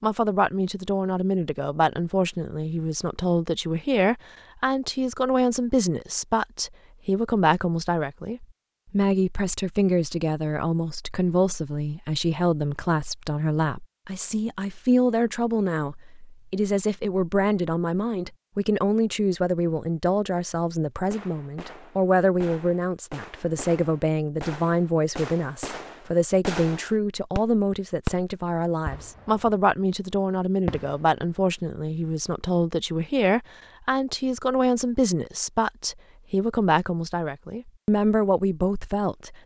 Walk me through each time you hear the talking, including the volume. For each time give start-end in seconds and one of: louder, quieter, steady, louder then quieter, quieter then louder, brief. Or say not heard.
0.0-39.4 steady.